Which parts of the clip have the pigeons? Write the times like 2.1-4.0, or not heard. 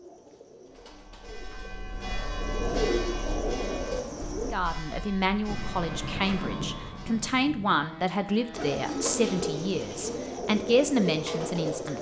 0.0-4.5, 8.5-11.9.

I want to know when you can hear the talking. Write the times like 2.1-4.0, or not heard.
4.5-11.9.